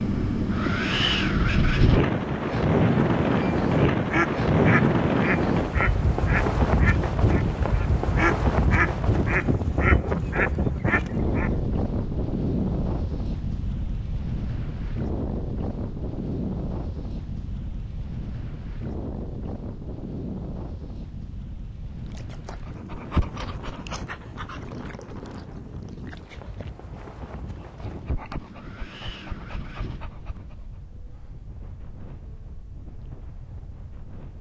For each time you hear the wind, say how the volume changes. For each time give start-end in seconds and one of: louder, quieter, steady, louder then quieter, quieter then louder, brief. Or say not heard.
0.0-34.3 quieter.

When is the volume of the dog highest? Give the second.
23 s.